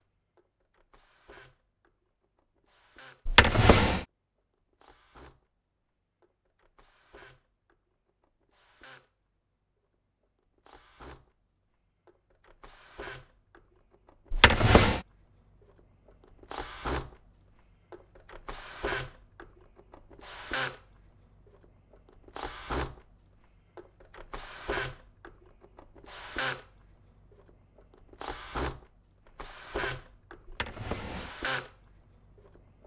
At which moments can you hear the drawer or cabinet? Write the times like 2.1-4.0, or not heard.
3.2-4.0, 14.3-15.0, 30.4-31.4.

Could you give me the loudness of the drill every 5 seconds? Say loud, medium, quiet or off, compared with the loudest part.
quiet, quiet, quiet, loud, loud, loud, loud.